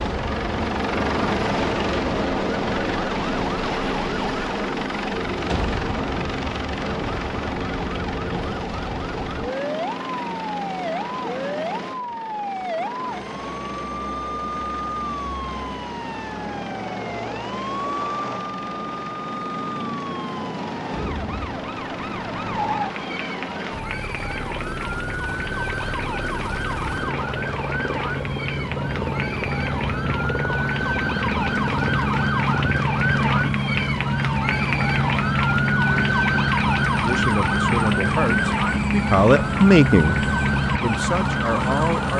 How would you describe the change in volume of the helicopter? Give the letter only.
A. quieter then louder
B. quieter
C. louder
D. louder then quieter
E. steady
A.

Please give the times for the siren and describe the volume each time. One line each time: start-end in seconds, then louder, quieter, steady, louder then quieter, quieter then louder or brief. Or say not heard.
0.0-42.1 louder.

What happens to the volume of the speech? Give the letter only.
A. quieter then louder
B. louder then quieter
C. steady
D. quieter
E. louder
B.